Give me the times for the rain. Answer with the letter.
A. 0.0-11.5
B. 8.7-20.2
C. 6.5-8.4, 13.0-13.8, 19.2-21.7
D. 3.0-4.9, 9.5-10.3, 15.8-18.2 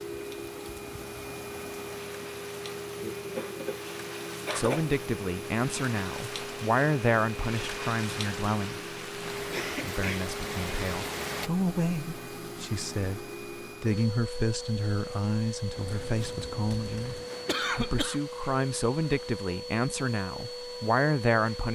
A.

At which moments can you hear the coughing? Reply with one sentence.
The coughing can be heard from 3.0 to 4.9 s, from 9.5 to 10.3 s and from 15.8 to 18.2 s.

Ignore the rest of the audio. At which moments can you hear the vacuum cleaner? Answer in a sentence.
The vacuum cleaner can be heard from 0.0 to 21.7 s.